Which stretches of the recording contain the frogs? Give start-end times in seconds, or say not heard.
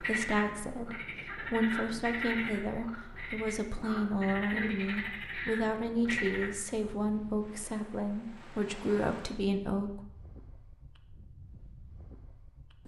0.0-6.9.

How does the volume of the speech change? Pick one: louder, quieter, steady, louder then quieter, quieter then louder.
steady.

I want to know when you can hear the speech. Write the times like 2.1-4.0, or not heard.
0.0-10.0.